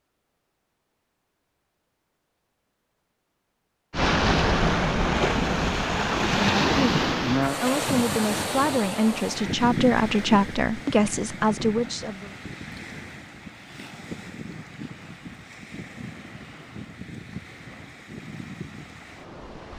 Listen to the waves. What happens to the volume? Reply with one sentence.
The volume of the waves goes down.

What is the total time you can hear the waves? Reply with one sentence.
The waves can be heard for 16 seconds in total.